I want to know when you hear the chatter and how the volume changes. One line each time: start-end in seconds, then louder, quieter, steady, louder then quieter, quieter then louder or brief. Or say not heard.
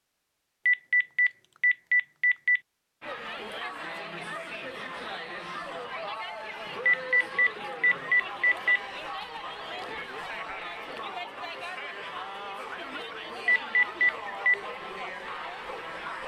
3.0-16.2 steady.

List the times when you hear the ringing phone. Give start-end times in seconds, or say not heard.
0.7-2.6, 6.8-8.8, 13.4-14.6.